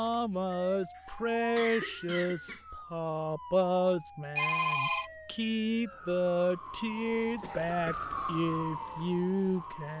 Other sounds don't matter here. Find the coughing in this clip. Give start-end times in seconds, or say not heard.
0.9-2.6, 7.3-8.4.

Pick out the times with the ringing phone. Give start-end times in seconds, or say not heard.
4.3-5.1.